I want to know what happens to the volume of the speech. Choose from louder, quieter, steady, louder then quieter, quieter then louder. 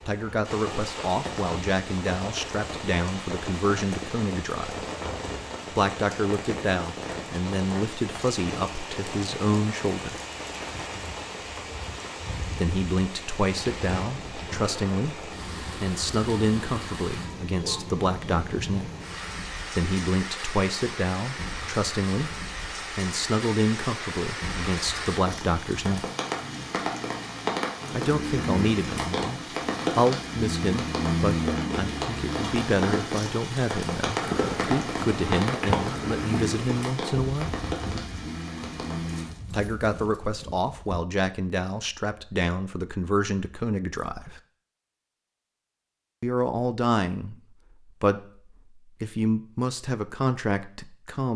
steady.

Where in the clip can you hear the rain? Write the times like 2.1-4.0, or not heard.
0.0-39.3.